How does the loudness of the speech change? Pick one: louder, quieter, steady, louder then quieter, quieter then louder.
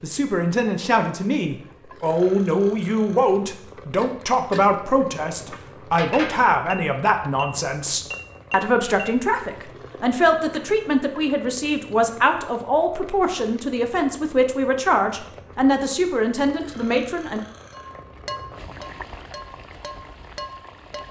steady.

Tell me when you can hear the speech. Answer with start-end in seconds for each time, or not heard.
0.0-17.4.